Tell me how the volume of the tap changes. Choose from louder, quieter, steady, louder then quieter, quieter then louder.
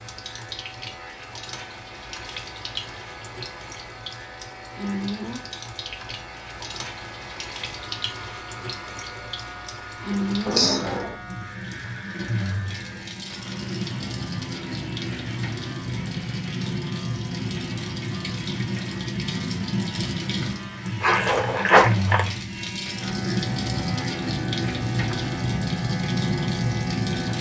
louder.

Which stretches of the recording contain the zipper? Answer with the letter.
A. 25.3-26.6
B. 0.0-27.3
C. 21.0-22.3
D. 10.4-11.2
C.